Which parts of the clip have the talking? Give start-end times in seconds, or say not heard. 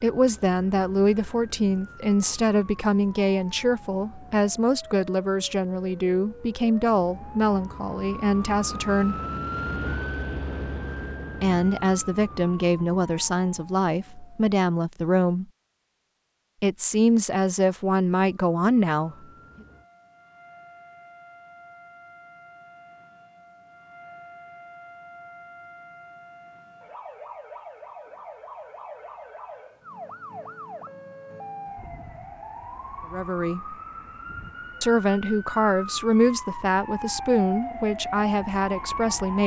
0.0-9.2, 11.4-15.4, 16.6-19.1, 33.1-33.8, 34.8-39.4.